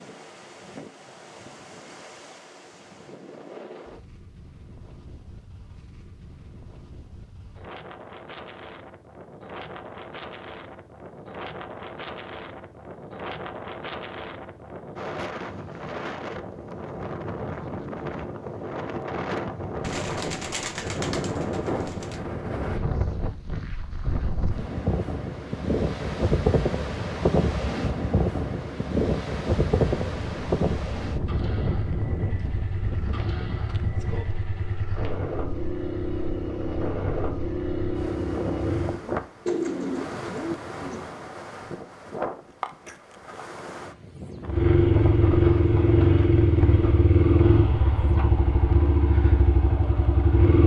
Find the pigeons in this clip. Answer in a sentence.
The pigeons can be heard from 19.8 to 22.2 s and from 39.5 to 41.1 s.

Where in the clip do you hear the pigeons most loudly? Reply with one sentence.
The loudest moment of the pigeons is at 40 seconds.